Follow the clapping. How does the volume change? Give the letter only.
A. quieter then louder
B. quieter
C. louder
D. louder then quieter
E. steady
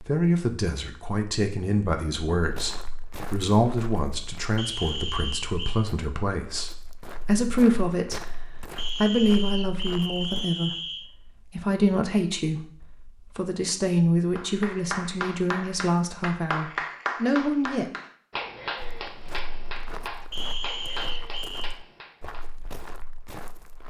B.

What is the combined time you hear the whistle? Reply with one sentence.
You can hear the whistle for 5 seconds altogether.